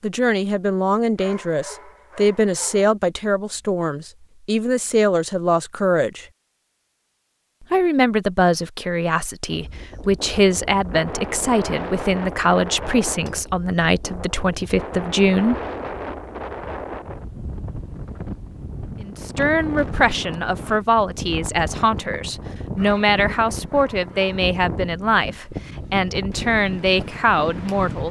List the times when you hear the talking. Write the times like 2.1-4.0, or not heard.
0.0-6.2, 7.7-15.6, 19.0-28.0.